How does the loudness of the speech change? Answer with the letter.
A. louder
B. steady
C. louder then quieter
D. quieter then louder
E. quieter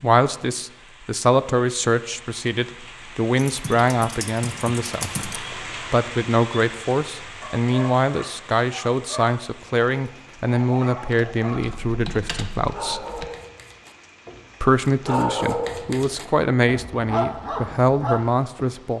B.